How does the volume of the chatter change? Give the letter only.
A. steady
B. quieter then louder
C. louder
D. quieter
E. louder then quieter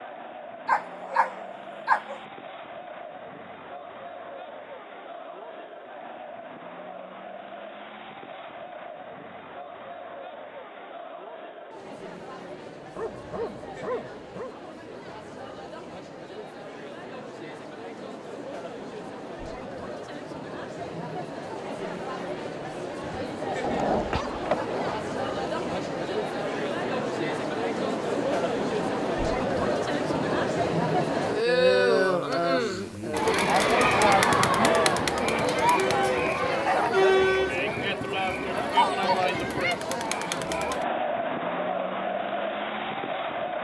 C.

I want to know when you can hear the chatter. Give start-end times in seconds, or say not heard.
0.0-43.6.